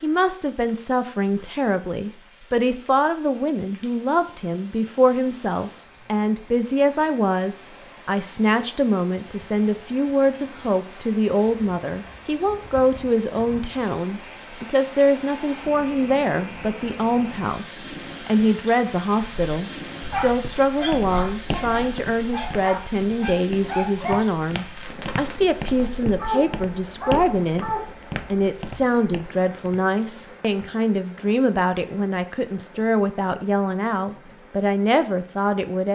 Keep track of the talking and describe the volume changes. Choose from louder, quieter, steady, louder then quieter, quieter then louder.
steady.